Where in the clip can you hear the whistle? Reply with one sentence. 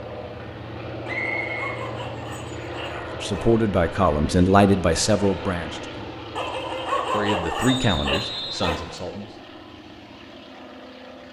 You can hear the whistle from 1.1 to 1.8 s and from 7.7 to 8.7 s.